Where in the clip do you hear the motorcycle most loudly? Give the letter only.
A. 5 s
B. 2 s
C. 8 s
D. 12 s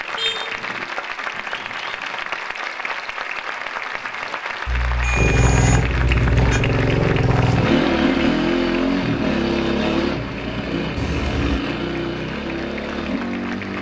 C.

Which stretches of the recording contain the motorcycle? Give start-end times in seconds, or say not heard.
5.2-13.7.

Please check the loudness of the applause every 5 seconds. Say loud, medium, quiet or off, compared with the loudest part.
loud, loud, medium.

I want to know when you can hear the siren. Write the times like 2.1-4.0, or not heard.
not heard.